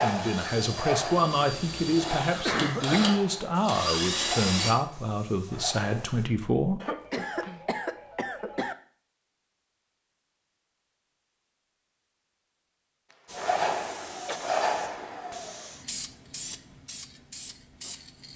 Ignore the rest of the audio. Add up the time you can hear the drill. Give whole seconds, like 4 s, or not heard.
5 s.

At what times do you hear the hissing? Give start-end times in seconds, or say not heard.
0.0-6.3, 13.2-18.3.